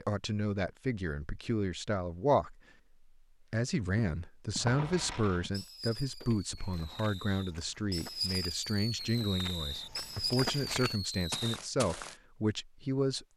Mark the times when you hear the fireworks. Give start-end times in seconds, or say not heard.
4.6-11.6.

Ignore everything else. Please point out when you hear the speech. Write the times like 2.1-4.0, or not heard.
0.0-2.6, 3.5-13.2.